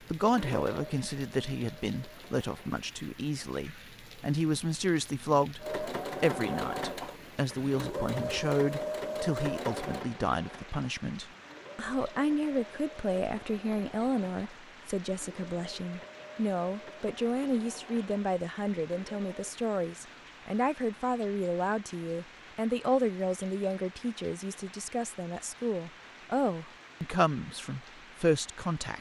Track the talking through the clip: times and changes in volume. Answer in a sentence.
The talking can be heard from 0.1 to 28.9 s, at a steady volume.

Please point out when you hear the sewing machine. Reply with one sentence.
The sewing machine can be heard from 0.1 to 2.8 s and from 5.6 to 19.6 s.